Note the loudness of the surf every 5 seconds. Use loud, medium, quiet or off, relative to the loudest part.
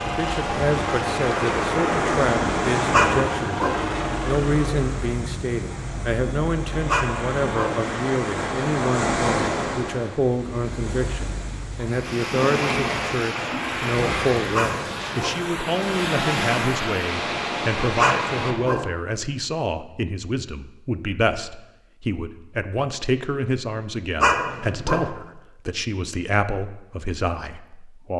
loud, loud, loud, loud, off, off.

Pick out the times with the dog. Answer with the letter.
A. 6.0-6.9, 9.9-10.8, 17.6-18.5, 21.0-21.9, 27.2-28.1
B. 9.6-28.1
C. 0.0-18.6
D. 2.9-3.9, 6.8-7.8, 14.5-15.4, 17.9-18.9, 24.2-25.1
D.